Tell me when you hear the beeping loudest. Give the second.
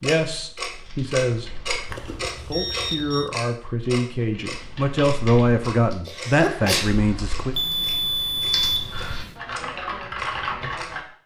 9 s.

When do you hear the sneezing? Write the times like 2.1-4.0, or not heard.
6.0-7.1.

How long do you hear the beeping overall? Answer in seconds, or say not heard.
3 s.